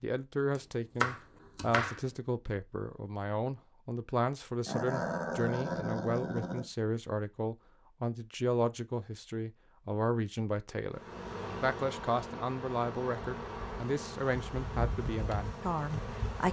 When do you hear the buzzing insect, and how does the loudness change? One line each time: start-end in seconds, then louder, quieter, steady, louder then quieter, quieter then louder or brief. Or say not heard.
10.9-16.4 steady.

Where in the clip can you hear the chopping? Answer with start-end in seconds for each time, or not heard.
0.6-2.1.